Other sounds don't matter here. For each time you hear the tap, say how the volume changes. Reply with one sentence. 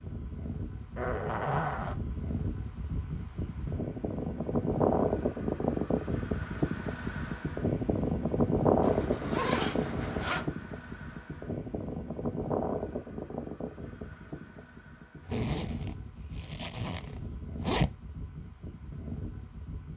The tap can't be heard in this clip.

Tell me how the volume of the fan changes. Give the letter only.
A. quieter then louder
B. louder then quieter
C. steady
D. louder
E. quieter
B.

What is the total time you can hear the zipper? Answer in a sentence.
The zipper can be heard for 5 seconds in total.